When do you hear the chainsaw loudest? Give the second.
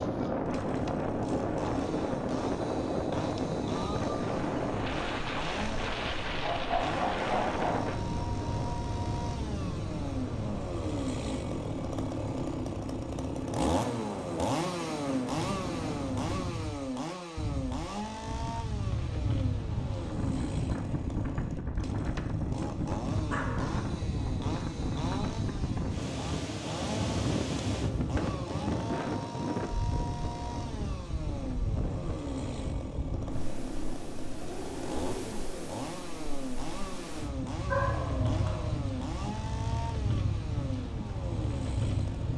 14 s.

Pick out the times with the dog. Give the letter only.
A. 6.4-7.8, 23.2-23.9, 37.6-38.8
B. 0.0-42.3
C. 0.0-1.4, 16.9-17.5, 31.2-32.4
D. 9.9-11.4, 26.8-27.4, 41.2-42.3
A.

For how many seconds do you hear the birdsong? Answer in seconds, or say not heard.
not heard.